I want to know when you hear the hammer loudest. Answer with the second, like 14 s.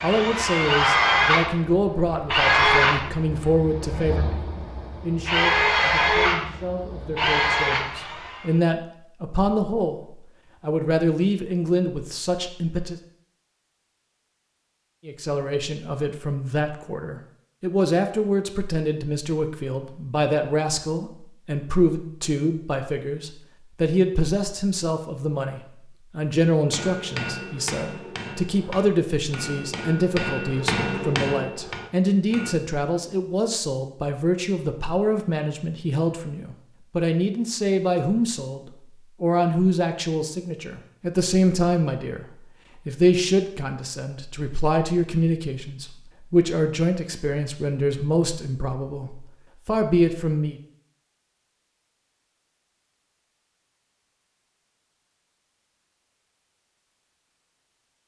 31 s.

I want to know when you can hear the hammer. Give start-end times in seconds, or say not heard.
26.6-32.5.